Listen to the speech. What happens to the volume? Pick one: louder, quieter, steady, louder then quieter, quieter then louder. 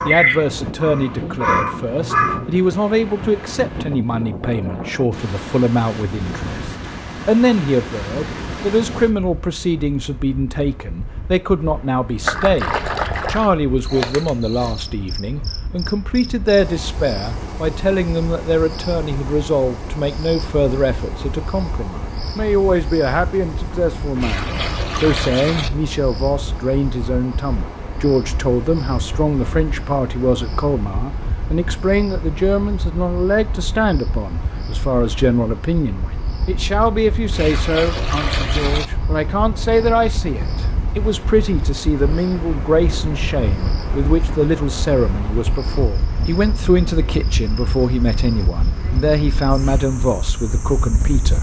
steady.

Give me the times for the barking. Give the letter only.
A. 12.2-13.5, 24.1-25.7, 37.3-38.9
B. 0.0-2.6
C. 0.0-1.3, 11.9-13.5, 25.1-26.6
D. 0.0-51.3
B.